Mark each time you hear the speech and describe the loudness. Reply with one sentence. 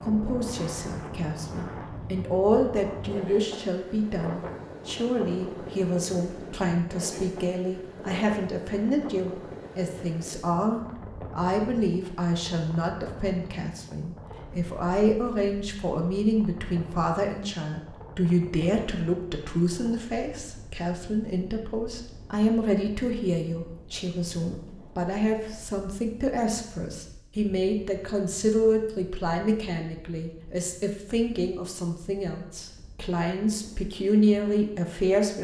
You can hear the speech from 0.0 to 35.3 s, at a steady volume.